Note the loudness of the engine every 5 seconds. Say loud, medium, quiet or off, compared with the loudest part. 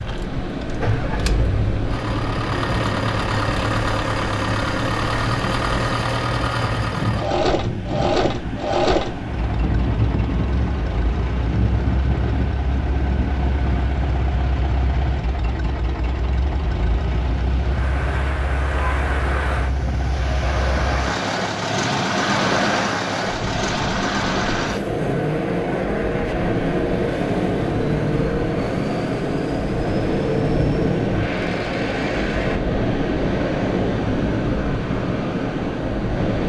loud, loud, medium, medium, loud, loud, loud, off.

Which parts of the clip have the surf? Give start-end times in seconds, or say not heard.
0.0-36.4.